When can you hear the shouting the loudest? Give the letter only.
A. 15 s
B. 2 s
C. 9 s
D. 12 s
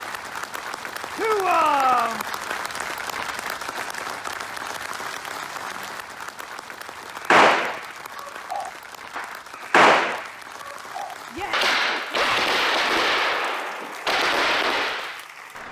B.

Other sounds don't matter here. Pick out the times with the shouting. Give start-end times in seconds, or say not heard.
1.1-2.2, 11.3-12.6.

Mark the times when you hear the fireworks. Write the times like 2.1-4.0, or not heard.
7.2-15.2.